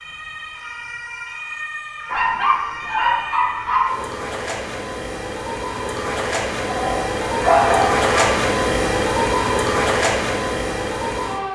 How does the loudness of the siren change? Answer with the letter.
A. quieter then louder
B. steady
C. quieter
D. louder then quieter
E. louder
E.